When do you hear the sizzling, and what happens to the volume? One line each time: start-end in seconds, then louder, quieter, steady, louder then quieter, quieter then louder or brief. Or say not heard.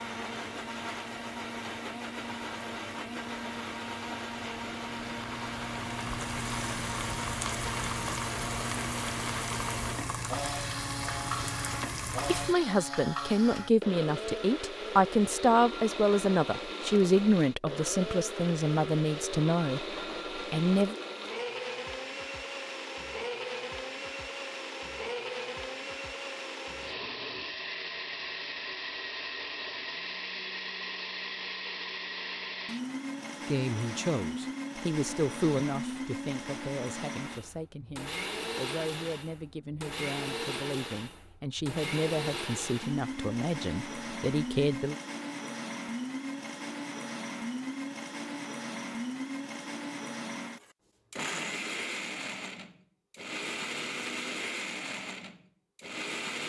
0.0-12.6 louder.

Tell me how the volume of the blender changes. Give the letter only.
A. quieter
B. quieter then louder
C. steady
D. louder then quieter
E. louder
C.